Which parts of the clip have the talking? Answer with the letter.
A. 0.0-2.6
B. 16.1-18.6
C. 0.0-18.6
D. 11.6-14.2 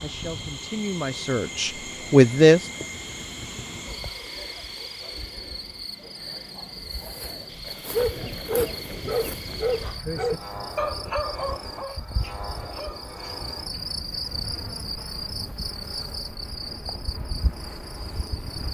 A.